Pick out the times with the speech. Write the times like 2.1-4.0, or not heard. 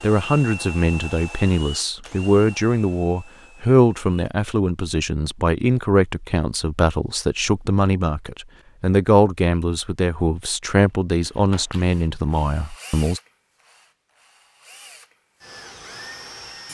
0.0-13.2.